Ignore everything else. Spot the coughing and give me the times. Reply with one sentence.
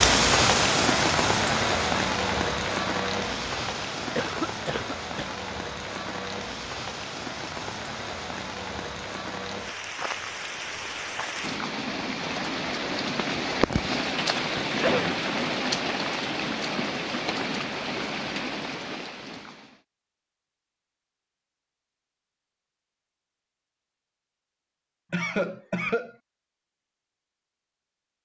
You can hear the coughing from 4.2 to 5.3 s, from 14.7 to 15.2 s and from 25.1 to 26.1 s.